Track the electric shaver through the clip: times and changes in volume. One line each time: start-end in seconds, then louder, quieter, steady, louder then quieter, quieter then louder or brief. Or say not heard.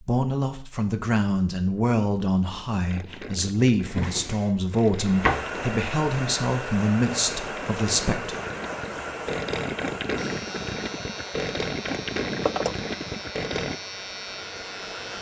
10.2-15.1 steady.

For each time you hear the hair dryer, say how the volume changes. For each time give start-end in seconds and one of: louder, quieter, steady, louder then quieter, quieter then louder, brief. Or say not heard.
5.0-15.1 quieter.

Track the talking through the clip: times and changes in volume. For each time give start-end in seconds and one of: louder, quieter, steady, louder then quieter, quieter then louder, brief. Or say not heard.
0.0-8.4 steady.